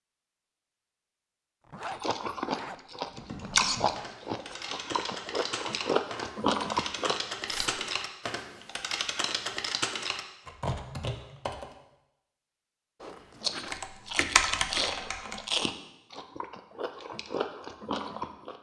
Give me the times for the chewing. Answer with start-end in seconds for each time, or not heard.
1.9-7.2, 13.4-18.5.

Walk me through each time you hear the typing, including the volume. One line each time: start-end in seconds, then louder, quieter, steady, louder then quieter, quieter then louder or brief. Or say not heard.
3.0-11.8 louder
13.7-15.6 brief.